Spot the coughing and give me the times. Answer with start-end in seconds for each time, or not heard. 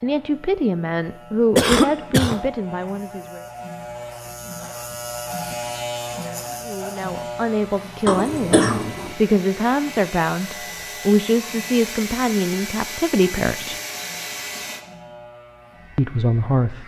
1.6-2.4, 8.1-9.2, 13.6-14.8.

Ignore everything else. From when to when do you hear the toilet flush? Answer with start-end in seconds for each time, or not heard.
not heard.